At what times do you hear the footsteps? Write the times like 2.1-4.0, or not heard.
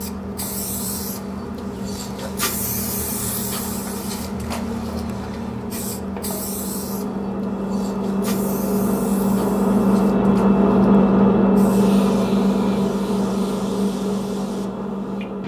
not heard.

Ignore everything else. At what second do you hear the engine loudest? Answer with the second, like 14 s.
11 s.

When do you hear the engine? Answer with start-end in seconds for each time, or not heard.
0.0-15.4.